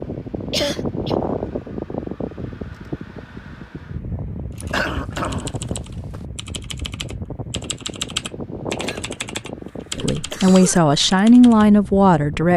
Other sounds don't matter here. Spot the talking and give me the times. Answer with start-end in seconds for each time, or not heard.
9.9-12.5.